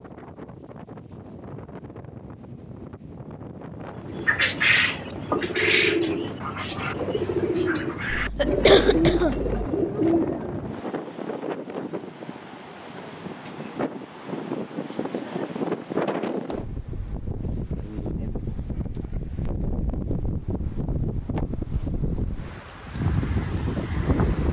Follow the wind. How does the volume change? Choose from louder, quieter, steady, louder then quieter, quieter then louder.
louder.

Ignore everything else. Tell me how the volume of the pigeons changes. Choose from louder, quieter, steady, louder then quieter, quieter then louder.
steady.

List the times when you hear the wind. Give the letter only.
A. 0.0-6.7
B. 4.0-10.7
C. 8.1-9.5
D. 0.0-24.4
D.